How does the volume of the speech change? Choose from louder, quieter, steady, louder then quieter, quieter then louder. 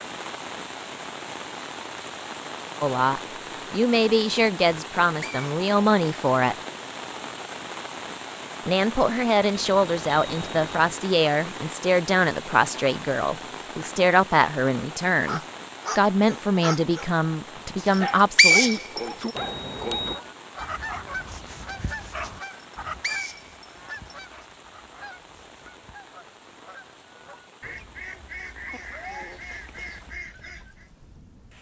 steady.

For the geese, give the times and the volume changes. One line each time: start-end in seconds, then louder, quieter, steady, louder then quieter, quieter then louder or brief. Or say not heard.
20.0-30.9 quieter then louder.